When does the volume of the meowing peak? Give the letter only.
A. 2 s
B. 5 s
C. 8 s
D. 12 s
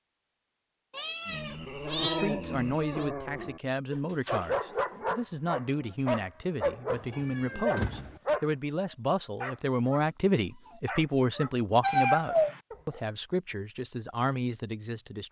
D.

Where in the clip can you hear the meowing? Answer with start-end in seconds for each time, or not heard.
0.9-3.0, 6.9-8.2, 11.8-12.6.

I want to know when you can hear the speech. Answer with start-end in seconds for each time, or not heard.
2.0-15.2.